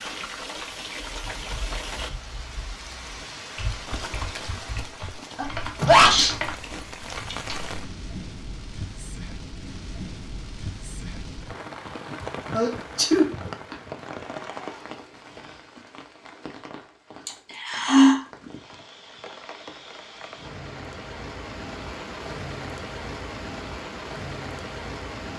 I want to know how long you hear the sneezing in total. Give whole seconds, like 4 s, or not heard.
3 s.